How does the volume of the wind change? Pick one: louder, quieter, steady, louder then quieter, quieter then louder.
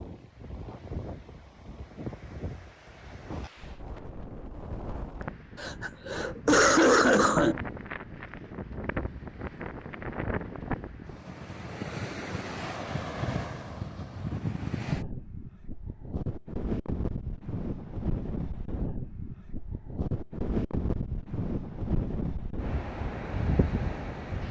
louder.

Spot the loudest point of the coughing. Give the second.
7 s.